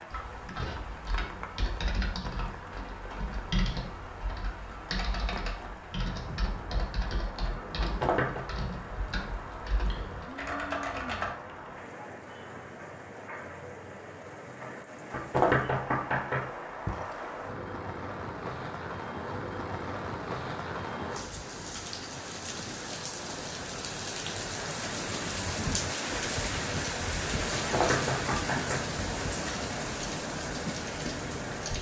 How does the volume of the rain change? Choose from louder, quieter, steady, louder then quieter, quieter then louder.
louder.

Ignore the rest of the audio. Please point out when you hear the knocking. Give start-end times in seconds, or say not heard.
7.8-8.4, 15.1-17.0, 27.5-29.3.